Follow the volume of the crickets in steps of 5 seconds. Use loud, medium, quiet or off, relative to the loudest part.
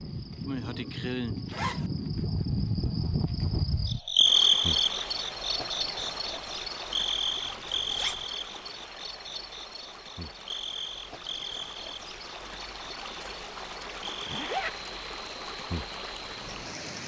loud, medium, quiet, quiet.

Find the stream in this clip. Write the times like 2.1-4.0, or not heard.
4.2-17.0.